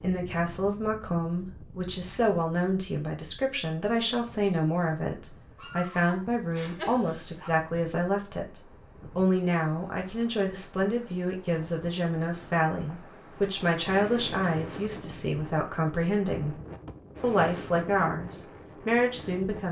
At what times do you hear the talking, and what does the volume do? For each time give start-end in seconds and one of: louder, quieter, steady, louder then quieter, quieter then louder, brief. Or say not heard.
0.0-16.6 steady
17.2-19.6 brief.